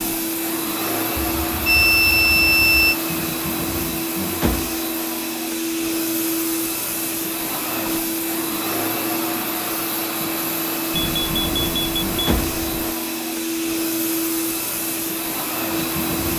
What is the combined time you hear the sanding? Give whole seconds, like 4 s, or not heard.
not heard.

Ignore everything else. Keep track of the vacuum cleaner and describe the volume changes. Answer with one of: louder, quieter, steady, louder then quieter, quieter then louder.
steady.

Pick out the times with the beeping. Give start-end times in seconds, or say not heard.
1.2-3.0, 10.9-12.9.